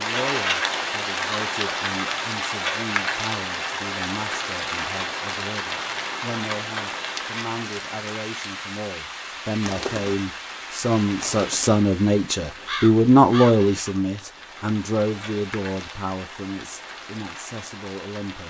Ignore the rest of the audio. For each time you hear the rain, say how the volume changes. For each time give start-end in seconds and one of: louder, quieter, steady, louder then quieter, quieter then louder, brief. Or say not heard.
0.0-18.4 quieter.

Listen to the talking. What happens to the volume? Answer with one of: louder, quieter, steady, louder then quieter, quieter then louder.
louder then quieter.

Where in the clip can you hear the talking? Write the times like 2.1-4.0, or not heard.
0.0-18.4.